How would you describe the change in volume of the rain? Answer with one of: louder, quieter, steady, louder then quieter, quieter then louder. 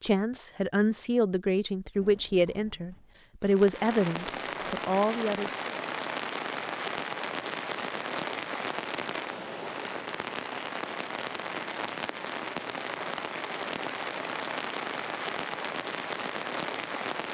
steady.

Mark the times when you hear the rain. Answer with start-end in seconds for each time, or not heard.
3.4-17.2.